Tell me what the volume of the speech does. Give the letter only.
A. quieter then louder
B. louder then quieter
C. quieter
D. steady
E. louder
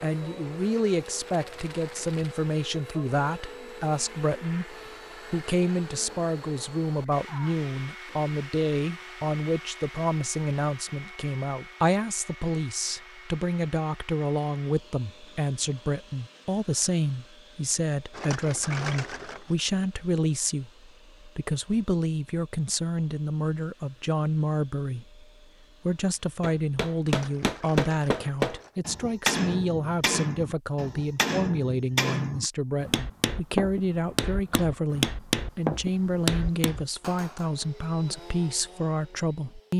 D.